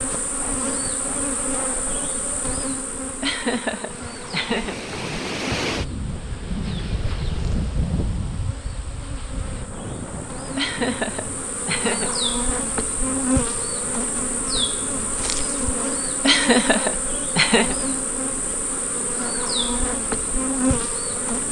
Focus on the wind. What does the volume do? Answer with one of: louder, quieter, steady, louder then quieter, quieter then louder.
louder then quieter.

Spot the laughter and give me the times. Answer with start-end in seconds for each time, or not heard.
3.2-4.8, 10.6-12.2, 16.2-17.8.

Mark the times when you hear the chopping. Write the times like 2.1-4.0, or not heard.
not heard.